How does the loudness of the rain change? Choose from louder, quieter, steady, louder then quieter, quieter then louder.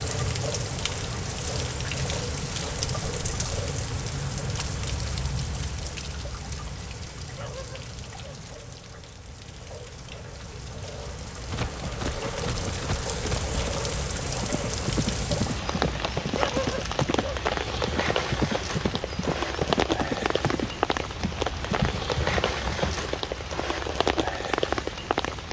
quieter then louder.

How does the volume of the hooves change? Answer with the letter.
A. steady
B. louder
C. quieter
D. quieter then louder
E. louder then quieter
A.